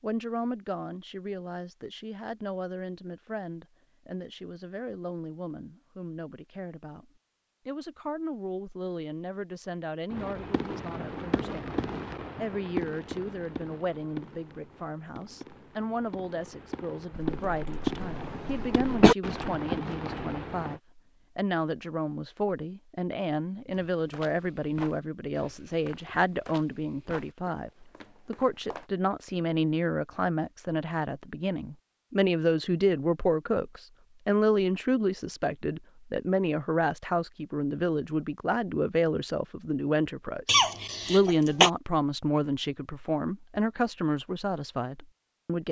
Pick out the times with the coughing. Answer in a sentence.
You can hear the coughing from 17.1 to 19.1 s and from 40.5 to 41.7 s.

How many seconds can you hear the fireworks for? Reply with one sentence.
The fireworks can be heard for 11 seconds in total.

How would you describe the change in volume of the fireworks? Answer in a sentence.
The volume of the fireworks goes down, then up.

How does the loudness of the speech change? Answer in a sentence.
The volume of the speech goes up.